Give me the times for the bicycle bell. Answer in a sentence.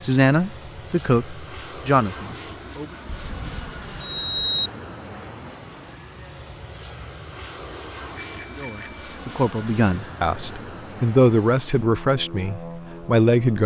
The bicycle bell can be heard from 3.0 to 4.7 s and from 8.2 to 9.2 s.